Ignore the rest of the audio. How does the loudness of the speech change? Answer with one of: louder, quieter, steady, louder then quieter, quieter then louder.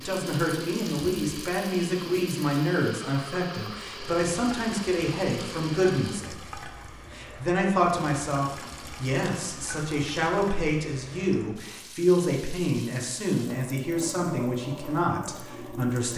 steady.